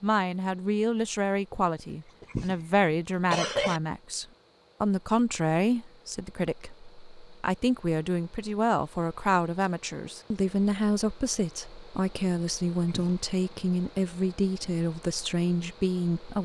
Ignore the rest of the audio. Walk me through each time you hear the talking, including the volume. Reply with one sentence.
You can hear the talking from 0.0 to 16.4 s, at a steady volume.